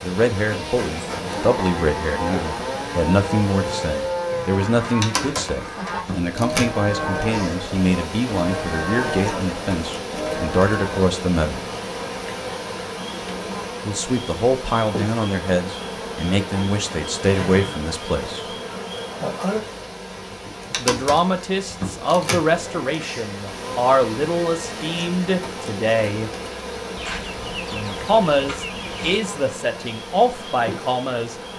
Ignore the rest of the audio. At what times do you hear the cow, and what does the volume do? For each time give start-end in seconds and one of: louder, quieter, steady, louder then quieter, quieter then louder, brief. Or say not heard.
0.5-11.2 steady.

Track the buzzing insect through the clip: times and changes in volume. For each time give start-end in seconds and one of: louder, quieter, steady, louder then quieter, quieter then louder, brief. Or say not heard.
0.0-31.5 steady.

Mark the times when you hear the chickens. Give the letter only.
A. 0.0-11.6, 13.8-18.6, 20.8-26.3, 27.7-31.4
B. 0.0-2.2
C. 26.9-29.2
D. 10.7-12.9
C.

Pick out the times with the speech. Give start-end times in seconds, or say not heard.
0.0-11.6, 13.8-18.6, 20.8-26.3, 27.7-31.4.